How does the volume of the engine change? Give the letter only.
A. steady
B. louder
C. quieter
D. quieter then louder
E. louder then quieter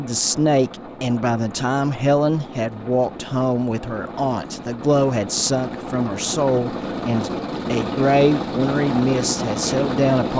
B.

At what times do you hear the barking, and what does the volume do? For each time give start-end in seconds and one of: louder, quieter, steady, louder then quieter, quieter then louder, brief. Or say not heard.
not heard.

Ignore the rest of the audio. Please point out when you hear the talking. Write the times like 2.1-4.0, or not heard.
0.0-10.3.